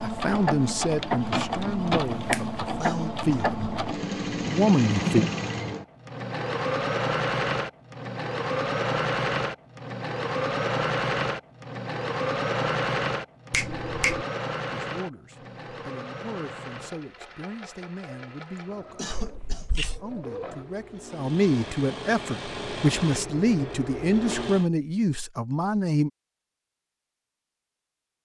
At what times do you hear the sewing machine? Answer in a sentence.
The sewing machine can be heard from 0.0 to 24.6 s.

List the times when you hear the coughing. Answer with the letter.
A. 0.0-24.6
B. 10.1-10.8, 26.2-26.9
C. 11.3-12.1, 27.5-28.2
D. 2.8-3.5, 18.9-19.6
D.